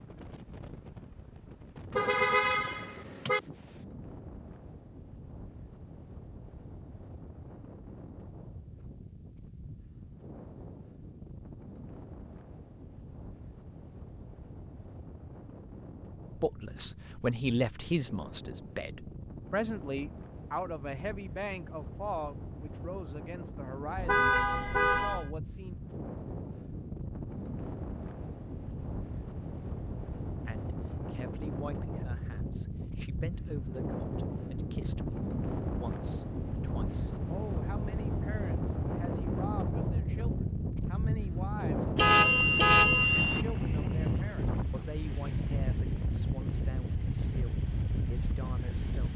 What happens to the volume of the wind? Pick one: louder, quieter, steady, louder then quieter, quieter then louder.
louder.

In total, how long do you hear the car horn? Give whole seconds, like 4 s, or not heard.
4 s.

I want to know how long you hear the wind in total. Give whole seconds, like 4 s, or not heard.
49 s.